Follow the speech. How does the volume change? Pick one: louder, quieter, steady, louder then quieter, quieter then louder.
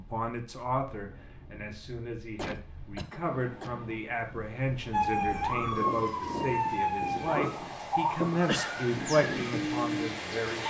louder.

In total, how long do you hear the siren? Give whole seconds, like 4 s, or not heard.
6 s.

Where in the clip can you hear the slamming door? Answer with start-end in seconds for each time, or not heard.
not heard.